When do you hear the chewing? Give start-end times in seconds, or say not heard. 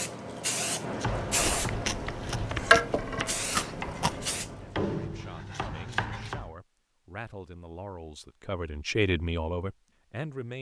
1.4-4.2.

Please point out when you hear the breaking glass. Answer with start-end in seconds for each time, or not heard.
not heard.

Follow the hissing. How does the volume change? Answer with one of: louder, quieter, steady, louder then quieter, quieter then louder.
louder then quieter.